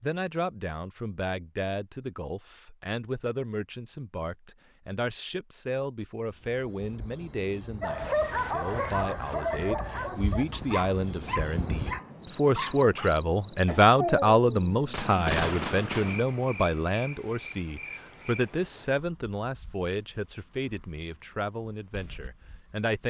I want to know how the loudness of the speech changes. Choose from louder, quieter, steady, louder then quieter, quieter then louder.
louder then quieter.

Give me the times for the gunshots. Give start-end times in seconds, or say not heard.
14.9-16.2.